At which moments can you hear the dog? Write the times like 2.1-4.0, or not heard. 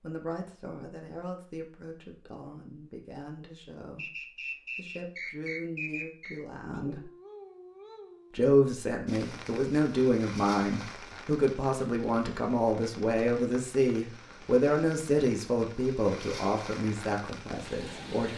6.7-8.4.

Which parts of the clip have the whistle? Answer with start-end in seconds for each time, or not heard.
4.0-6.4.